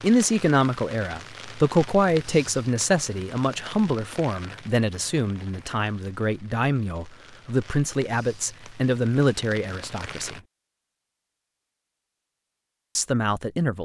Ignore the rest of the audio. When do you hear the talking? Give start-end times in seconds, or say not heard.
0.0-10.4, 12.9-13.7.